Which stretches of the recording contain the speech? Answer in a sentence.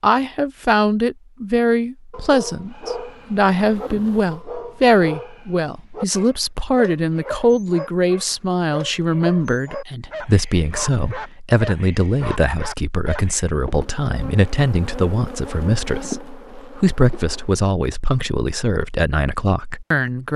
You can hear the speech from 0.0 to 20.3 s.